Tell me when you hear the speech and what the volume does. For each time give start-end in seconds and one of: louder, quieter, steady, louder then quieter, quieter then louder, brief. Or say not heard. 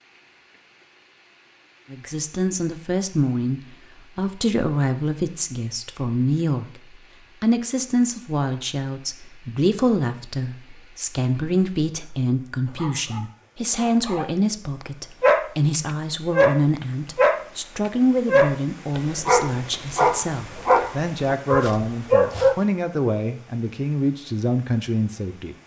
1.9-25.6 steady.